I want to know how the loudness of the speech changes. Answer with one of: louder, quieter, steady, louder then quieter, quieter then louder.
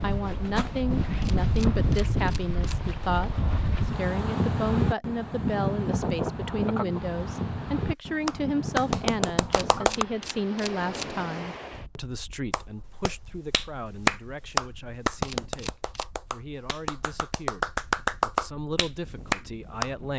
quieter.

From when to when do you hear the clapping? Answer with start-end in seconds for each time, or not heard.
8.2-10.1, 12.5-19.9.